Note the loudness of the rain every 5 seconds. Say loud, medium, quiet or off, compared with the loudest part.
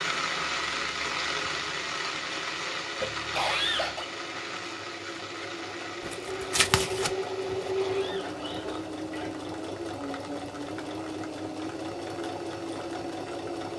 loud, medium, quiet.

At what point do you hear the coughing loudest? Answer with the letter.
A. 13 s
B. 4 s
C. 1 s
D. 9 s
B.